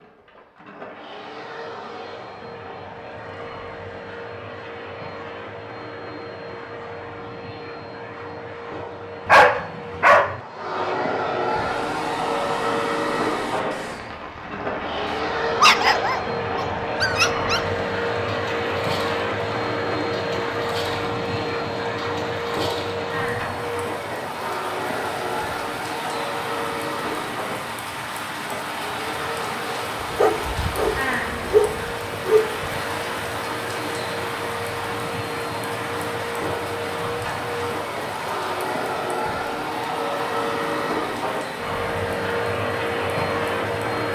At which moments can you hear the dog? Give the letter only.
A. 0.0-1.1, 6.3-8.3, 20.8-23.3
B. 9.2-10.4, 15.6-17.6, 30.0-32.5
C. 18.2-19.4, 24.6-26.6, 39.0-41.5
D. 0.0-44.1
B.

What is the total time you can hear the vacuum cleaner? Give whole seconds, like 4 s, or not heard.
44 s.